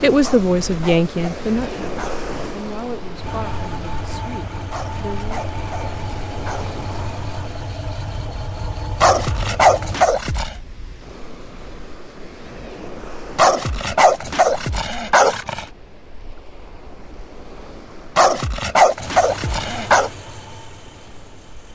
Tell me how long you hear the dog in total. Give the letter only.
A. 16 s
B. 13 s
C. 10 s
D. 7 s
C.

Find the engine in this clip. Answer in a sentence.
You can hear the engine from 3.2 to 10.1 s and from 18.9 to 21.7 s.